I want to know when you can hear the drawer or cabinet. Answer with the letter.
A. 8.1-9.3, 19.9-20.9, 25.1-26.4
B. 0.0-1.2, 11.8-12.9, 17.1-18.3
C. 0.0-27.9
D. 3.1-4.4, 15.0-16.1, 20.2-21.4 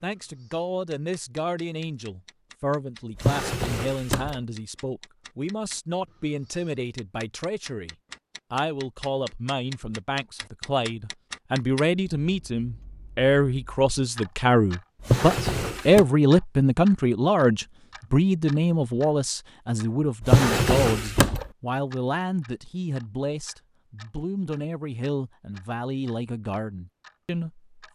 D.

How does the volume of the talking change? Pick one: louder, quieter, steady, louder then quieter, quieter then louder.
louder then quieter.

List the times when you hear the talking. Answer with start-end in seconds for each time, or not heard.
0.0-27.9.